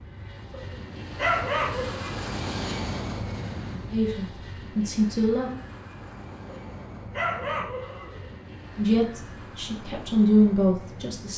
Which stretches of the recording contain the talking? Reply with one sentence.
You can hear the talking from 3.9 to 5.5 s and from 8.8 to 11.3 s.